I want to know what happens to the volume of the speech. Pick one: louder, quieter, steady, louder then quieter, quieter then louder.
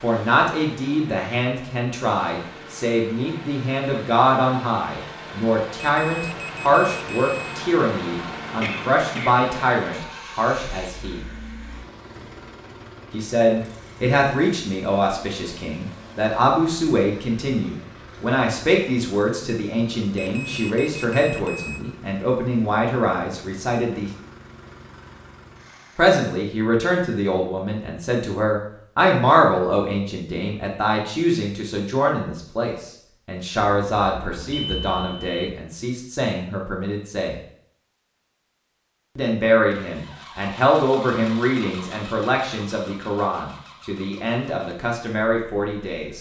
steady.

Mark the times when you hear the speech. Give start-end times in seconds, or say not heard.
0.0-11.2, 13.1-24.1, 25.9-37.4, 39.1-46.1.